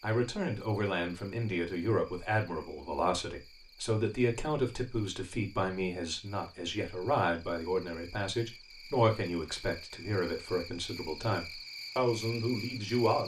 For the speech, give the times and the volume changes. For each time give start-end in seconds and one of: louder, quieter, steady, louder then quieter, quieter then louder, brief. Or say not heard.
0.0-13.2 steady.